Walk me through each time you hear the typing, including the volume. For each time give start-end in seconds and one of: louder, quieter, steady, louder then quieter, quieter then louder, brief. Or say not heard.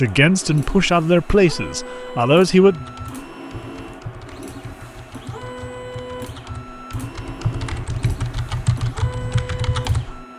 2.6-10.2 louder.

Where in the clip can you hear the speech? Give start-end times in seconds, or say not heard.
0.0-2.9.